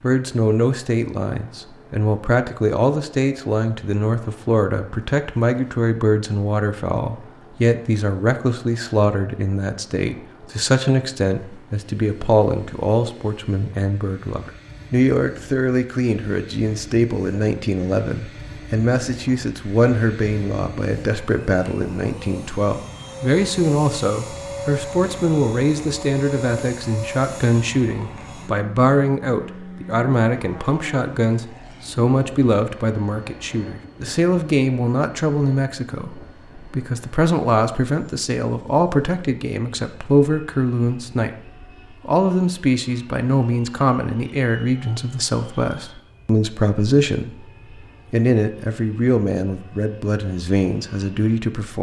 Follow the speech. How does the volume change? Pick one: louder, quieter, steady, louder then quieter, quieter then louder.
steady.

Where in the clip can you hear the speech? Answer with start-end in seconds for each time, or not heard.
0.0-47.5, 48.1-51.7.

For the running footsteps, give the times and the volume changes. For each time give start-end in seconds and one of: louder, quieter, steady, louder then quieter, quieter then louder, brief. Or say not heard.
not heard.